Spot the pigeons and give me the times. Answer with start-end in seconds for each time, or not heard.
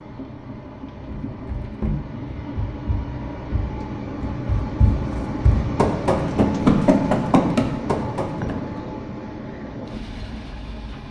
not heard.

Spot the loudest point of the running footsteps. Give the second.
7 s.